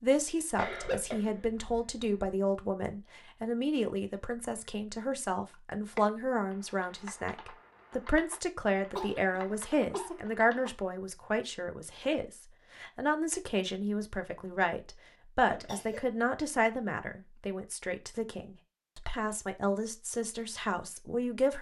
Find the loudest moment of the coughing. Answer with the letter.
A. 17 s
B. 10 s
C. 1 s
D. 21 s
C.